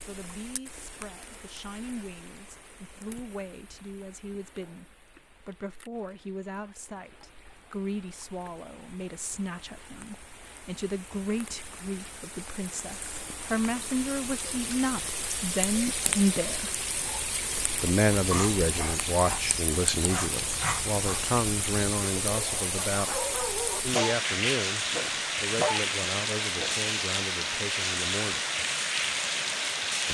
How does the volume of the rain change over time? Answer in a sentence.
The volume of the rain goes up.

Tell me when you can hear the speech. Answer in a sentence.
You can hear the speech from 0.0 to 16.7 s, from 17.8 to 23.1 s and from 23.8 to 28.4 s.